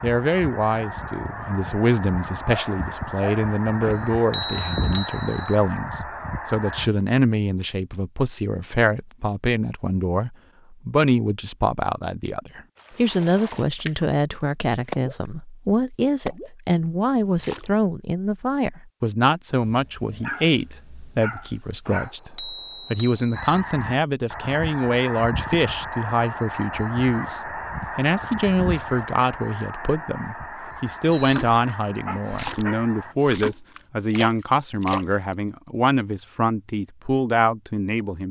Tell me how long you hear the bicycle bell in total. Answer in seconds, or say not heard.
4 s.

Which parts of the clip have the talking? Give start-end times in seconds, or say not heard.
0.0-38.2.